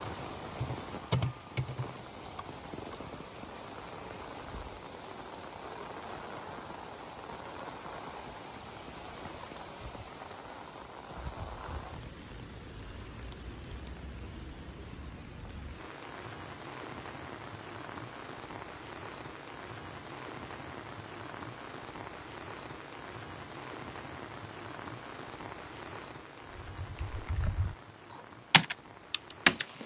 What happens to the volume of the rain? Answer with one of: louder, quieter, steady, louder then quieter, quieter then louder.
steady.